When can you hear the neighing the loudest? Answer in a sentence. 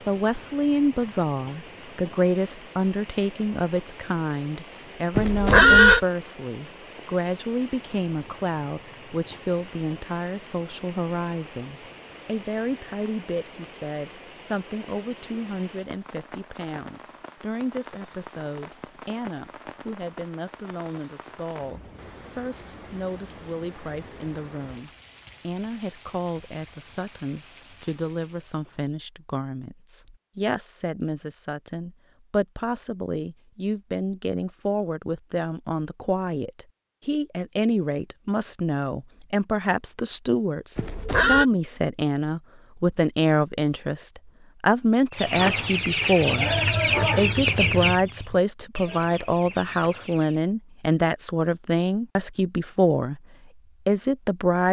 The volume of the neighing peaks at 6 seconds.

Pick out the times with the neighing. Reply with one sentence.
You can hear the neighing from 5.2 to 6.0 s and from 40.8 to 41.5 s.